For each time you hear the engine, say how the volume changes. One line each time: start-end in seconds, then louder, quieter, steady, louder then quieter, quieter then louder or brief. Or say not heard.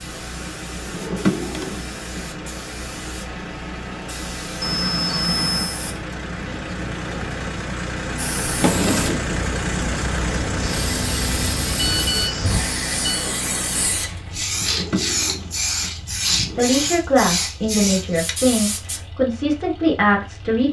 0.0-20.6 louder then quieter.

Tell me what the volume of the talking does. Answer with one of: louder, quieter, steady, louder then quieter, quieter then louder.
steady.